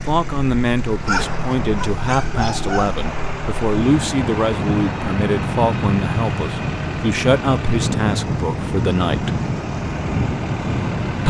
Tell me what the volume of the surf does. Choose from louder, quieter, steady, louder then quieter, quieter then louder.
louder.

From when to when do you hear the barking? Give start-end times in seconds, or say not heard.
1.1-2.9.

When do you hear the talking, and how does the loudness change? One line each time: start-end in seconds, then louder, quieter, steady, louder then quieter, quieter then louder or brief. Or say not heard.
0.1-9.3 steady.